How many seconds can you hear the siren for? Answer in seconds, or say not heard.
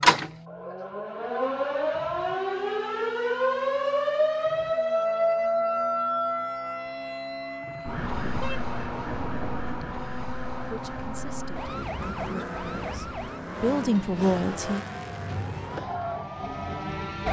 17 s.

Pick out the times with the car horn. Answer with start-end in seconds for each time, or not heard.
8.2-10.1.